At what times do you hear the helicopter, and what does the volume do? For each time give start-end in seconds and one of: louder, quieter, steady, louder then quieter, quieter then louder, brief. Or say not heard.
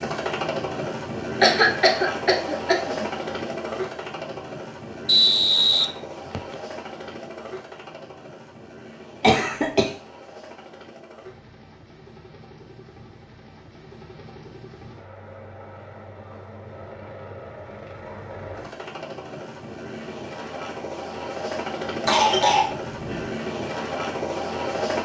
0.0-24.9 quieter then louder.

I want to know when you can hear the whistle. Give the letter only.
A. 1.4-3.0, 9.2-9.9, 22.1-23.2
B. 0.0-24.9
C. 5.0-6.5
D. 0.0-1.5
C.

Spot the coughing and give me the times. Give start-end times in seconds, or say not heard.
1.4-3.0, 9.2-9.9, 22.1-23.2.